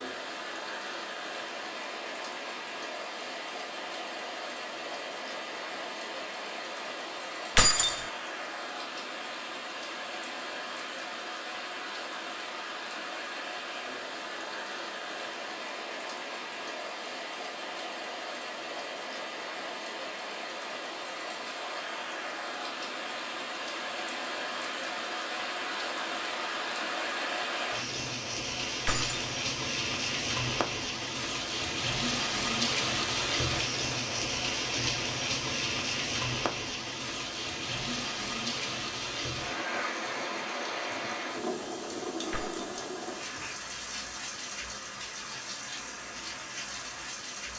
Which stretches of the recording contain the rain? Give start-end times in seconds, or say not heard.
0.0-47.5.